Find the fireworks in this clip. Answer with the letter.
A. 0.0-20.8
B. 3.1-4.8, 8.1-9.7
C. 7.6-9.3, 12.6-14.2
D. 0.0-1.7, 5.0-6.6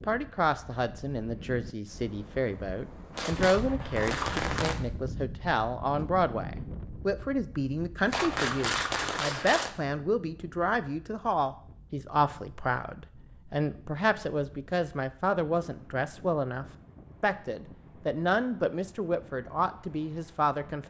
B.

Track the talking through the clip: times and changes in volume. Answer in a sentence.
You can hear the talking from 0.0 to 20.8 s, at a steady volume.